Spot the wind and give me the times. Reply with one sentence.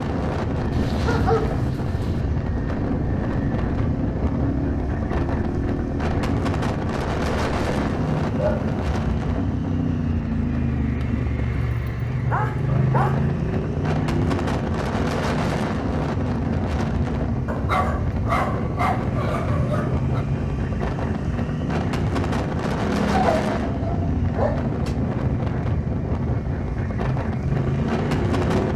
You can hear the wind from 0.0 to 28.7 s.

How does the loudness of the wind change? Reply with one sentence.
The volume of the wind stays about the same.